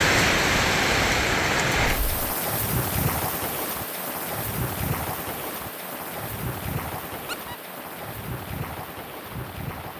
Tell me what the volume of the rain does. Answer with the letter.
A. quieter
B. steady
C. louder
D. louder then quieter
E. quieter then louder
A.